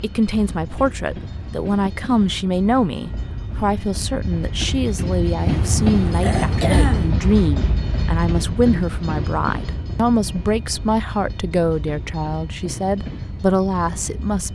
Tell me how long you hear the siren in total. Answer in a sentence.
You can't hear the siren here.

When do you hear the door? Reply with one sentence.
You can't hear the door here.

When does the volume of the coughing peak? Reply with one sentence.
The volume of the coughing peaks at 7 seconds.